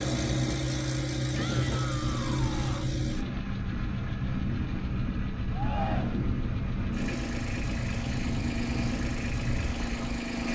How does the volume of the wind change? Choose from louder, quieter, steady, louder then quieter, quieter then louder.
steady.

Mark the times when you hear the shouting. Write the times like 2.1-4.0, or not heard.
1.3-3.0, 5.5-6.2.